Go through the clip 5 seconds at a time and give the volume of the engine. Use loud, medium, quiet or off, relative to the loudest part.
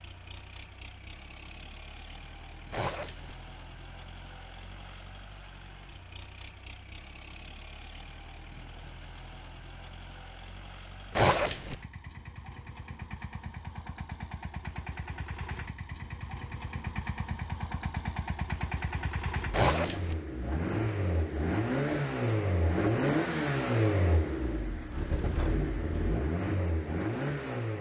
quiet, quiet, quiet, medium, loud, loud.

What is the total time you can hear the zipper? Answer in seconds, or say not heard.
2 s.